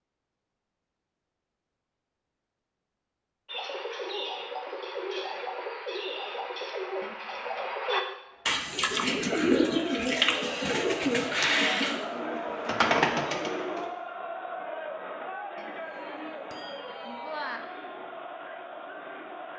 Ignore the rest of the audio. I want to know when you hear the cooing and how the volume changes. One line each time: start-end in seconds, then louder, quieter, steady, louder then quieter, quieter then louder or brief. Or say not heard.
3.5-13.9 louder.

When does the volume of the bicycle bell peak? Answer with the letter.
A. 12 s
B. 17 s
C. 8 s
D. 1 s
B.